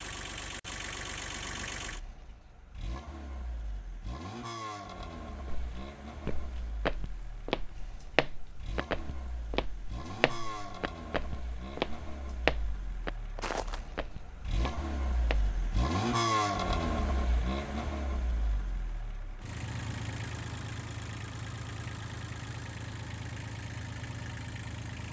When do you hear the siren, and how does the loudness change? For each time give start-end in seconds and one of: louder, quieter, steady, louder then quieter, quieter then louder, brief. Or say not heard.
not heard.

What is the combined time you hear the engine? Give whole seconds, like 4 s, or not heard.
25 s.